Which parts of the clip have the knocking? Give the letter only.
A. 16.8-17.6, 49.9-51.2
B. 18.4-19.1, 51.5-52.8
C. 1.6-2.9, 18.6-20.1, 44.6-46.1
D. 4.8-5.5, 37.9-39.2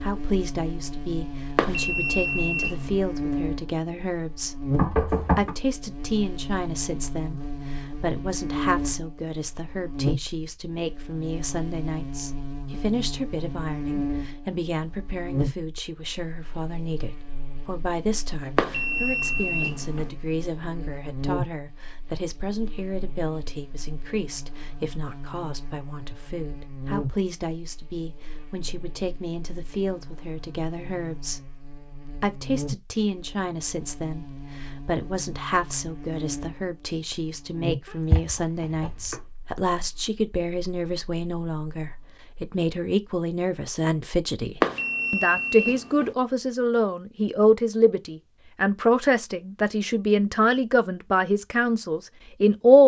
D.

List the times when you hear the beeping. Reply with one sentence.
You can hear the beeping from 1.6 to 2.9 s, from 18.6 to 20.1 s and from 44.6 to 46.1 s.